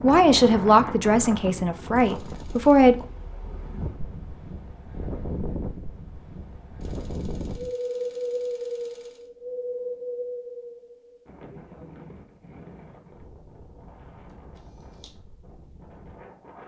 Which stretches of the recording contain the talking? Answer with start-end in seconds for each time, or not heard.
0.0-3.0.